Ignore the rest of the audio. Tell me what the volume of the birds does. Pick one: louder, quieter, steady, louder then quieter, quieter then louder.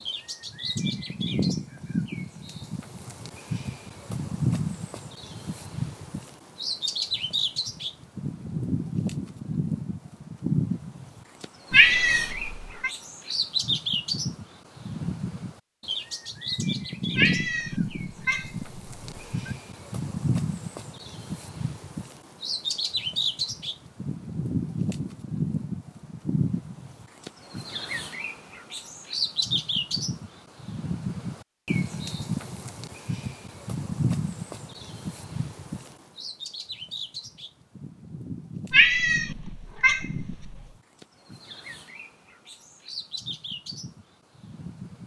quieter.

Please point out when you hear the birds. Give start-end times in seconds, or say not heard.
0.0-45.0.